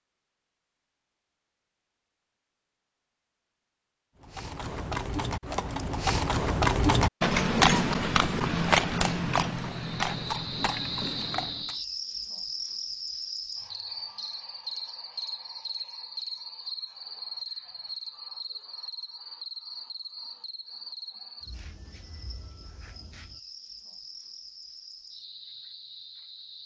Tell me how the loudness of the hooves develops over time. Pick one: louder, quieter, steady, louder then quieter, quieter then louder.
louder then quieter.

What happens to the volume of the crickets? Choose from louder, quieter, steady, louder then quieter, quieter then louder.
quieter.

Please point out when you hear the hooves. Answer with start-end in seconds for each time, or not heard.
4.2-11.8.